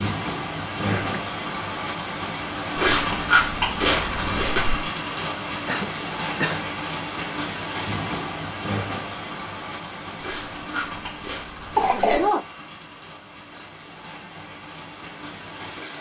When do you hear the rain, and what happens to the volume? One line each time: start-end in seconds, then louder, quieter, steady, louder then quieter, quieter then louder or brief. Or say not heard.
0.0-15.9 quieter.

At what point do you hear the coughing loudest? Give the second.
12 s.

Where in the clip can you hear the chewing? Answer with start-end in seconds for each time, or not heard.
2.8-4.8, 10.2-12.2.